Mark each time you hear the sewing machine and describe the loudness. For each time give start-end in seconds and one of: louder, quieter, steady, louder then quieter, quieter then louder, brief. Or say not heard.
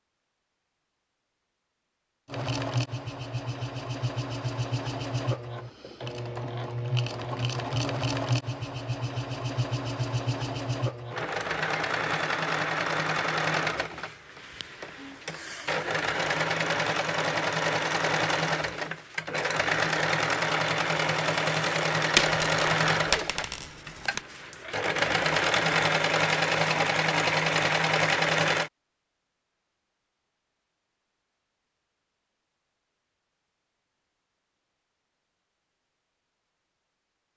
2.2-28.7 louder.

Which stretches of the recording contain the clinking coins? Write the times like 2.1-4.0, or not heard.
22.1-24.2.